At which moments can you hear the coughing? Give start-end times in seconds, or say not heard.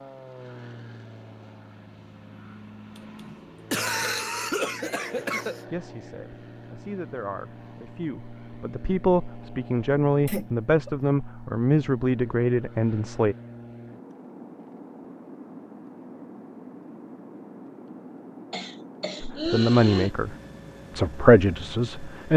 3.0-5.6, 10.2-10.9, 18.5-20.1.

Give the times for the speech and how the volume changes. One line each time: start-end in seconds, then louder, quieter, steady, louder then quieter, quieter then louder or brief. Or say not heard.
5.7-13.3 louder
19.2-20.4 brief
20.9-22.3 brief.